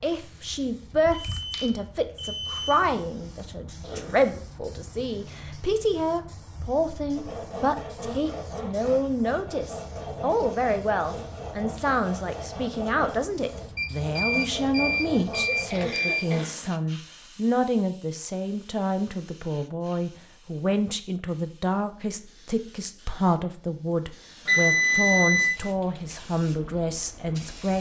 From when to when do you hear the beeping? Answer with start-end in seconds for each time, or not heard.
1.2-2.8, 13.8-16.4, 24.4-25.5.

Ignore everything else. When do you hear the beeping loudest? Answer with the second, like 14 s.
25 s.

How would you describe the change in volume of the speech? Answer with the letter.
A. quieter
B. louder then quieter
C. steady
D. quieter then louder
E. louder
C.